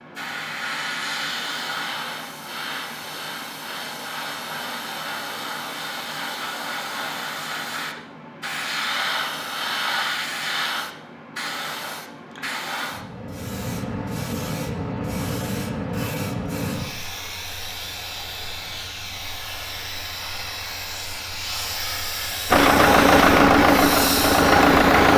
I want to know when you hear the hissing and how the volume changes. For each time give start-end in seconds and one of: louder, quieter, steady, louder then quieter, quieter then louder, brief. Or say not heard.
0.0-25.1 steady.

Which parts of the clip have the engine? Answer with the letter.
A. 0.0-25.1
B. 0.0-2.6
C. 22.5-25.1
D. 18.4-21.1
C.